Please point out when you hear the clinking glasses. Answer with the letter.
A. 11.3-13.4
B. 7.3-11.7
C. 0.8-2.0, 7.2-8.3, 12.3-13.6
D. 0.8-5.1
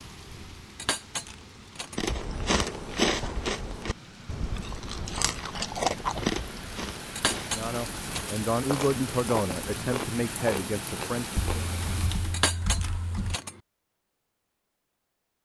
C.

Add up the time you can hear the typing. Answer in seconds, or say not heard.
2 s.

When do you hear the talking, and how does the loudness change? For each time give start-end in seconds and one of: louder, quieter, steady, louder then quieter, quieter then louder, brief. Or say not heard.
7.3-11.7 louder then quieter.